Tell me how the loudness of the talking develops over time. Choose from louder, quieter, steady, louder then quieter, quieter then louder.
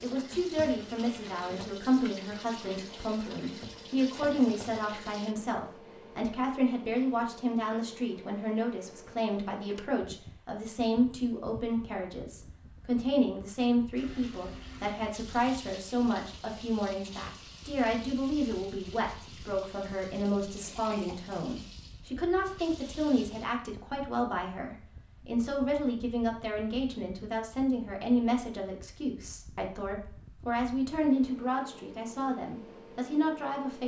steady.